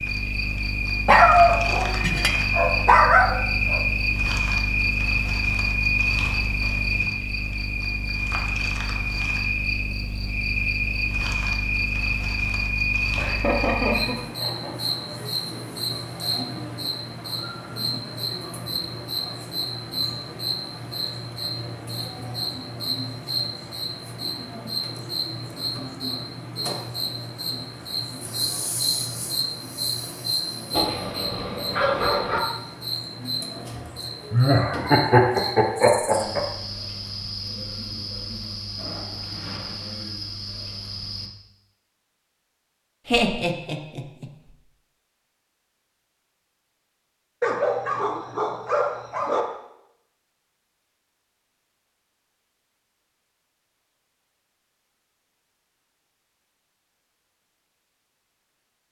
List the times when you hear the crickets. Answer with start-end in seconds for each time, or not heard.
0.0-41.3.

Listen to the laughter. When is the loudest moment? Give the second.
35 s.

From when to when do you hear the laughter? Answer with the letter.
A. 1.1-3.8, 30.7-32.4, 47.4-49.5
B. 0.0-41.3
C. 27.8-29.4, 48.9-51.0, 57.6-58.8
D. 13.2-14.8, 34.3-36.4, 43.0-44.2
D.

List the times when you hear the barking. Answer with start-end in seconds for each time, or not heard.
1.1-3.8, 30.7-32.4, 47.4-49.5.